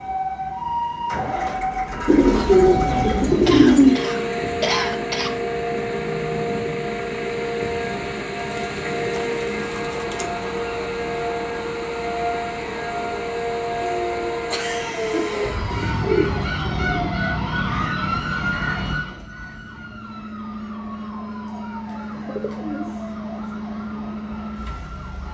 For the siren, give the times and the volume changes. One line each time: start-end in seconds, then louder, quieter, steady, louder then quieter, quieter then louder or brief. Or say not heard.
0.0-25.2 quieter.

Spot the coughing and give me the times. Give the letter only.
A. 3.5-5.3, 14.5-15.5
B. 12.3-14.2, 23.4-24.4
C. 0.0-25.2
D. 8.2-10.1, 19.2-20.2
A.